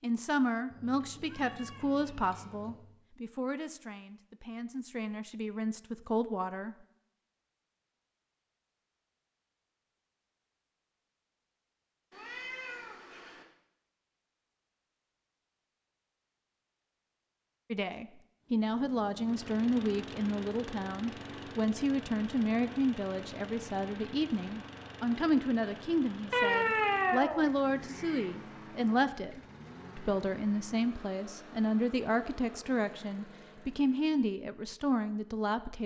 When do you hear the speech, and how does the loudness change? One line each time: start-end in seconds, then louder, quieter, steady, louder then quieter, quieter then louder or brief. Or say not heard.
0.0-6.8 quieter then louder
17.7-35.8 steady.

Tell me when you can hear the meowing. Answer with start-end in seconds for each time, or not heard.
0.7-2.7, 12.1-13.4, 26.3-28.2.